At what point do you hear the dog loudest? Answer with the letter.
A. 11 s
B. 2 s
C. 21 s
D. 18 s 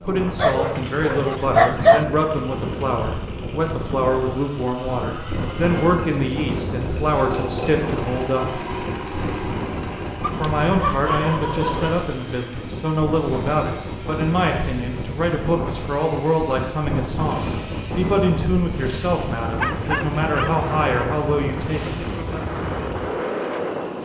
B.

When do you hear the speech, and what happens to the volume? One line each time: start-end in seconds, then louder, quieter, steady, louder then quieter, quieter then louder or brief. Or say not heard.
0.0-8.7 steady
10.3-22.0 steady.